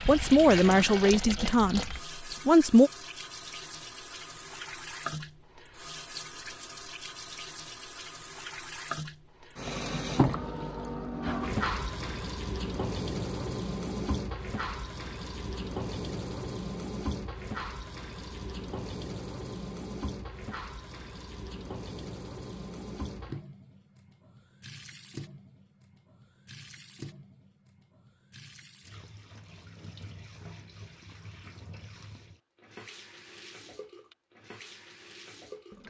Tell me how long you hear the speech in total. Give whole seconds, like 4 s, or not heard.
3 s.